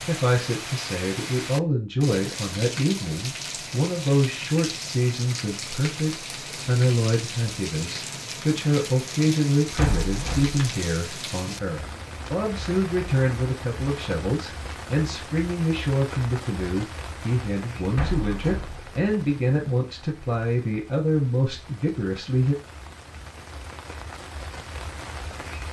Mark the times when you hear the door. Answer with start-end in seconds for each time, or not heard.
9.8-10.6, 17.9-18.9.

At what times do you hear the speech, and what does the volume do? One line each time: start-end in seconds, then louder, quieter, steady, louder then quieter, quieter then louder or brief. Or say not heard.
0.0-22.6 steady.